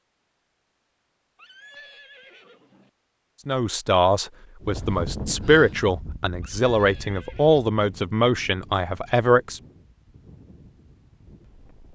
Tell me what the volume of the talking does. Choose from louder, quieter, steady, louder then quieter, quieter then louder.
steady.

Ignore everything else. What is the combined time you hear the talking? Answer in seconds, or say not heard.
6 s.